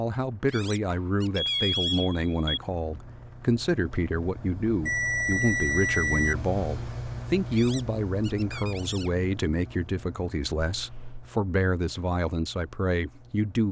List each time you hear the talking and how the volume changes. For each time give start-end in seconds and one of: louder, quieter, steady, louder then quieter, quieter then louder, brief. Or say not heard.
0.0-13.6 steady.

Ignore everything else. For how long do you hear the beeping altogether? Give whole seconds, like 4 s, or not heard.
4 s.